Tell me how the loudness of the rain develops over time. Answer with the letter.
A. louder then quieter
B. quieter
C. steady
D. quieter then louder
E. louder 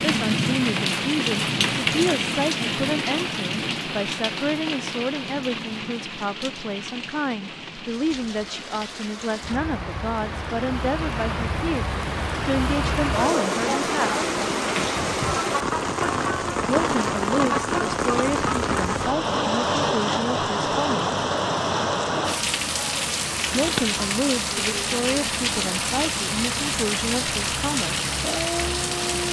D.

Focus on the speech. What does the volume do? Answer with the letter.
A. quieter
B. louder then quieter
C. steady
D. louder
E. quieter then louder
C.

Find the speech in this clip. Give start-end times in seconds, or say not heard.
0.0-14.2, 16.6-21.1, 23.5-28.1.